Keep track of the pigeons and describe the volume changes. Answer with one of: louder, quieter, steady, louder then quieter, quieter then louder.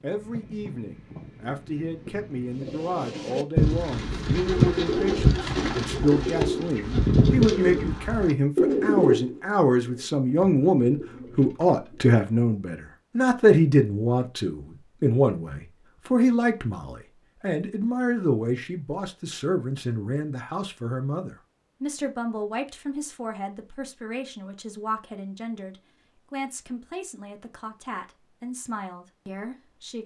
quieter.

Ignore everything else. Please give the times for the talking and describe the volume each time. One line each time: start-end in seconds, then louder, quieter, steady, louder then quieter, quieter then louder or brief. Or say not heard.
0.0-30.0 louder then quieter.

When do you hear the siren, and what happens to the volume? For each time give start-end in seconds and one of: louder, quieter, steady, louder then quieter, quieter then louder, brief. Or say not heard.
not heard.